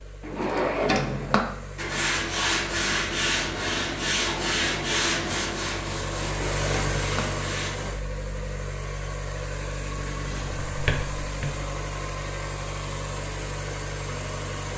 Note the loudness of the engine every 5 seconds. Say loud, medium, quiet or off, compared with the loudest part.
medium, loud, loud.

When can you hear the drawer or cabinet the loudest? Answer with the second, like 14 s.
1 s.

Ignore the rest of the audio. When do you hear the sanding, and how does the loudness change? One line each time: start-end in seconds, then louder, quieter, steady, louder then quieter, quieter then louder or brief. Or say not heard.
1.8-7.7 quieter.